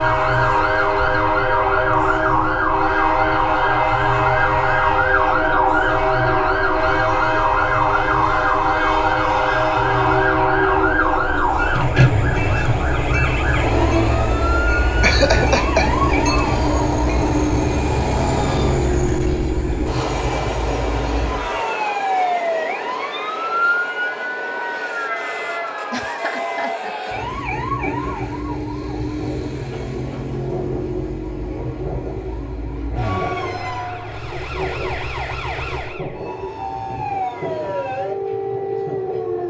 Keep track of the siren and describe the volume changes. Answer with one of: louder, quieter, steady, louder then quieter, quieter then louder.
quieter.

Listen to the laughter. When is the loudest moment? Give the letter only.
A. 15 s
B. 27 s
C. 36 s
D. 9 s
A.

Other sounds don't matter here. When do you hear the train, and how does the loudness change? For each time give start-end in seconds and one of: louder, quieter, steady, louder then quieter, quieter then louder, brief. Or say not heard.
0.0-39.4 quieter.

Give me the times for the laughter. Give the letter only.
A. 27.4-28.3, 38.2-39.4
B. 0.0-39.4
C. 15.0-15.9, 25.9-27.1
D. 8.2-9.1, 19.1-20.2
C.